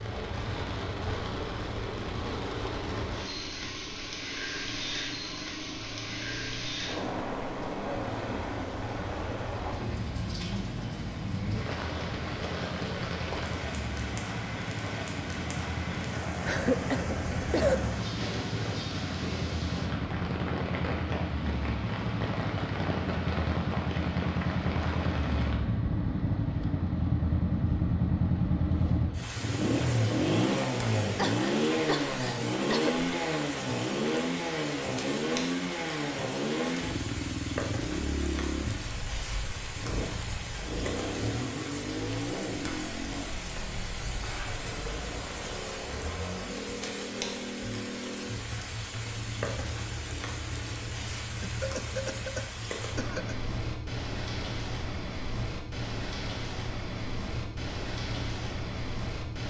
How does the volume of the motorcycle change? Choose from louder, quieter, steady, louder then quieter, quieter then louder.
louder then quieter.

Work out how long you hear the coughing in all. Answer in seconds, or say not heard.
5 s.